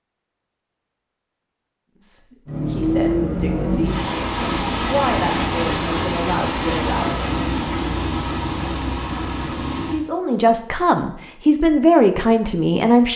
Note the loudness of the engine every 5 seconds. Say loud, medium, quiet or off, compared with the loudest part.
loud, loud, off.